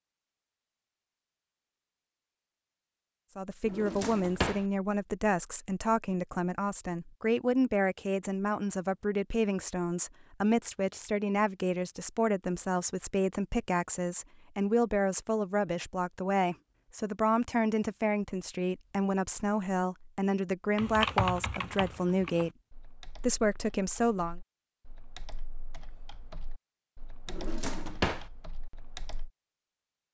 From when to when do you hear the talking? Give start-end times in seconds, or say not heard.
3.4-22.5, 23.2-24.4.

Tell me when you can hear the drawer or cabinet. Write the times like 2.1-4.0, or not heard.
3.6-4.7, 27.2-28.2.